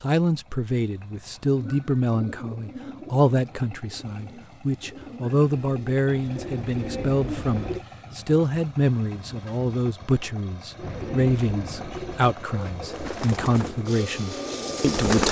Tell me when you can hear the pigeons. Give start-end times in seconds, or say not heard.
1.6-7.8, 10.8-15.2.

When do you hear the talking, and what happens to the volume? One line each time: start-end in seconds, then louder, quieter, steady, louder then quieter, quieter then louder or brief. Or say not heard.
0.0-15.2 steady.